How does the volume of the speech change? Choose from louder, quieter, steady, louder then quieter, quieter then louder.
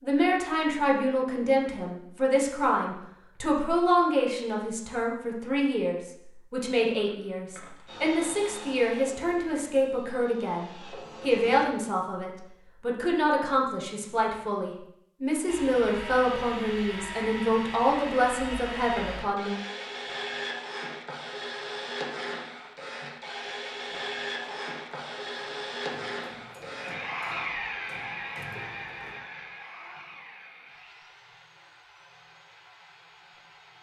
steady.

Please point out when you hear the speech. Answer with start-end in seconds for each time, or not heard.
0.0-19.5.